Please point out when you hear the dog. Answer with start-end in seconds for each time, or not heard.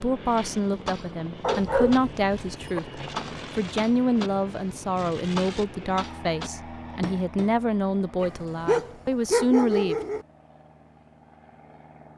1.4-2.8, 8.2-10.2.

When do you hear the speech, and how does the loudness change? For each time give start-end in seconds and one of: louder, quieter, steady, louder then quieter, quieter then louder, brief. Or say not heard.
0.0-9.9 steady.